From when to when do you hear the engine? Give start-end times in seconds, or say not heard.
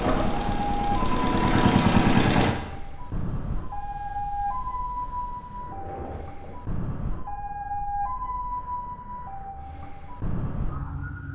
0.0-2.5.